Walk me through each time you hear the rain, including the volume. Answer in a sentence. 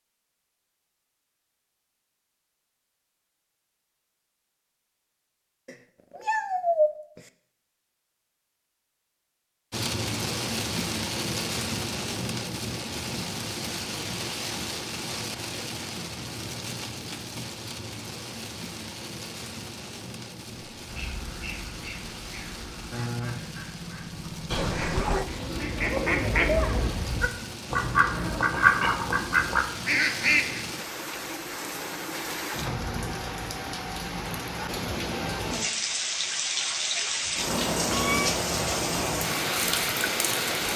The rain can be heard from 9.7 to 40.7 s, getting quieter then louder.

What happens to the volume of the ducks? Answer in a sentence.
The loudness of the ducks goes up.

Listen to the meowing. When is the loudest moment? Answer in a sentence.
The volume of the meowing peaks at 7 seconds.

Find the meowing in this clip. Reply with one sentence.
The meowing can be heard from 5.7 to 7.3 s, from 24.5 to 25.3 s and from 37.5 to 38.4 s.